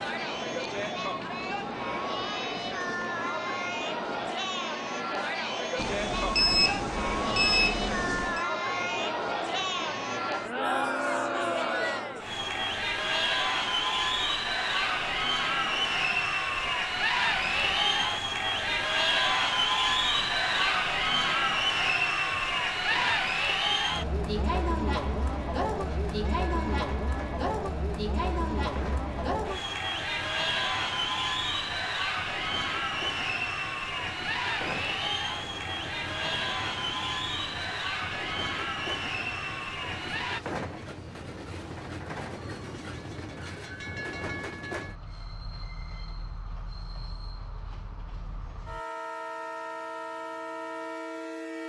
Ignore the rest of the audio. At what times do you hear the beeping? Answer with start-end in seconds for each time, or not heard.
5.8-8.4.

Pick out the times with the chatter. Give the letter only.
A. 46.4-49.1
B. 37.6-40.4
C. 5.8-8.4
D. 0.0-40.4
D.